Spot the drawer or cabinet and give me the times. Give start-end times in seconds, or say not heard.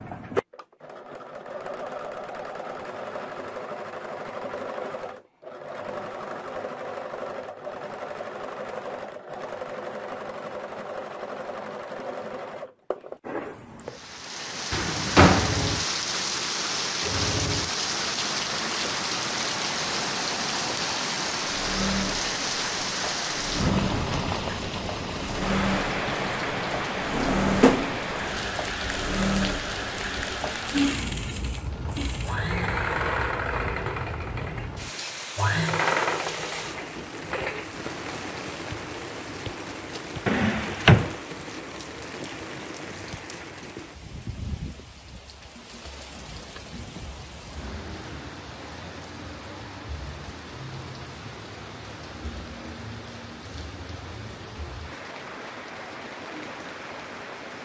14.7-15.5, 27.1-28.0, 40.2-41.1.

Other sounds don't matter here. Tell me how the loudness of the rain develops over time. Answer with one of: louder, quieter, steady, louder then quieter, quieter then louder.
quieter.